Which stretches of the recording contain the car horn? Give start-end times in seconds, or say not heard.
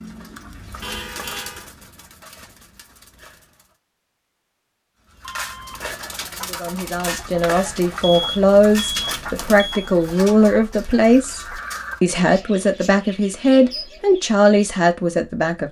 0.8-1.7.